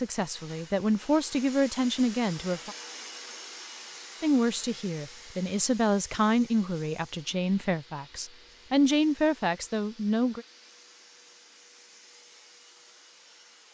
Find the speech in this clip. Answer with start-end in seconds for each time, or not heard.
0.0-2.8, 4.2-10.4.